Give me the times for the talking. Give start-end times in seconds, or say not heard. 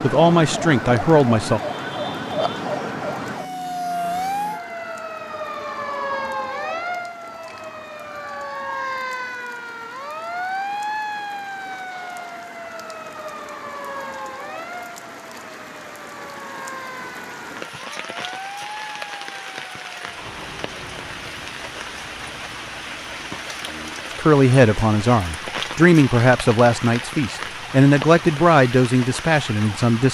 0.0-1.6, 24.1-30.1.